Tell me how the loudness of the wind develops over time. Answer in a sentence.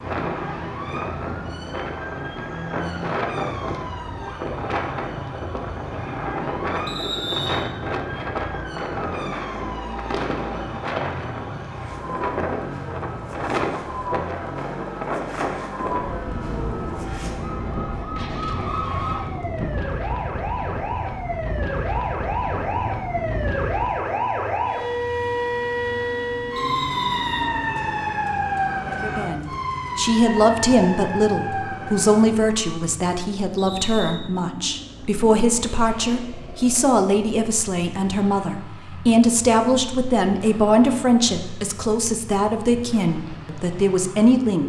The volume of the wind stays about the same.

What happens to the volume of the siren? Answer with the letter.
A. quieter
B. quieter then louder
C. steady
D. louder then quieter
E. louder
E.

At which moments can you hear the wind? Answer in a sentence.
You can hear the wind from 0.0 to 24.1 s.